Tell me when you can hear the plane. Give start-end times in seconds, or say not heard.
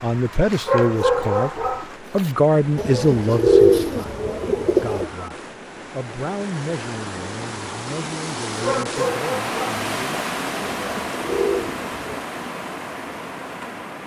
not heard.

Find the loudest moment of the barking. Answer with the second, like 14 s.
1 s.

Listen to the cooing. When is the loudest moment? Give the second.
4 s.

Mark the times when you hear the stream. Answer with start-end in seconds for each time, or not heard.
0.0-14.0.